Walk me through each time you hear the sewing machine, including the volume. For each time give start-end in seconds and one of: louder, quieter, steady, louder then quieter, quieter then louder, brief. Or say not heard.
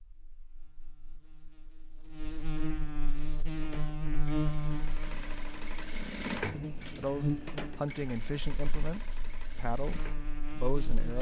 3.0-11.1 louder then quieter.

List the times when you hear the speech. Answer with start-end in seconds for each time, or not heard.
7.0-11.1.